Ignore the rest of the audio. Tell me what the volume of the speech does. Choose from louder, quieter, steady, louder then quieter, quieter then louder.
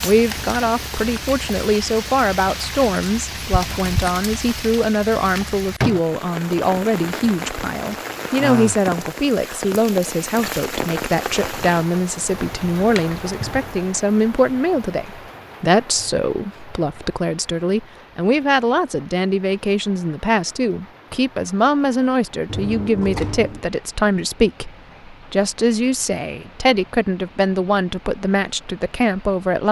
steady.